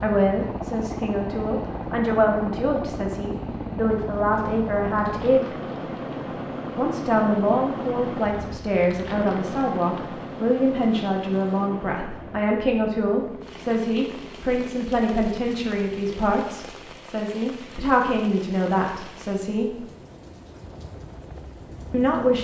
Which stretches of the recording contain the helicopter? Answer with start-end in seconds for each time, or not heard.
0.0-22.4.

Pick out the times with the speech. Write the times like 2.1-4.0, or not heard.
0.0-5.5, 6.8-19.8, 21.9-22.4.